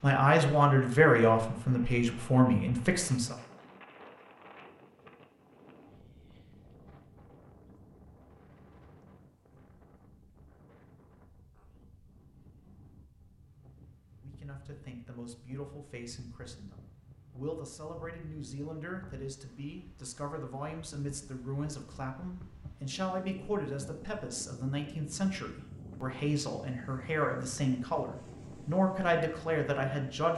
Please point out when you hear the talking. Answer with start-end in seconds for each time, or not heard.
0.0-3.4, 14.2-30.3.